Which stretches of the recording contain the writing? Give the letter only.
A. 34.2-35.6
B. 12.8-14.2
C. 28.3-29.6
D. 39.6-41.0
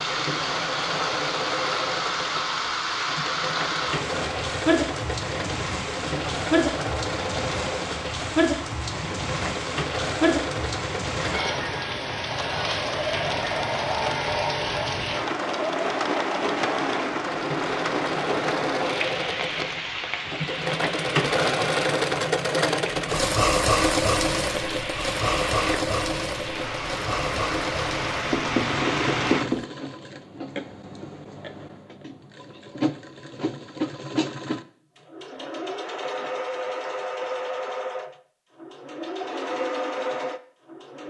C.